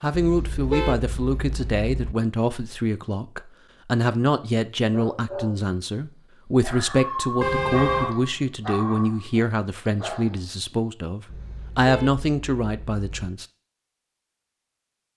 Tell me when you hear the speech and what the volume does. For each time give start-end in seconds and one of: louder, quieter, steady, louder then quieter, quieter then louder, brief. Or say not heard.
0.0-13.4 steady.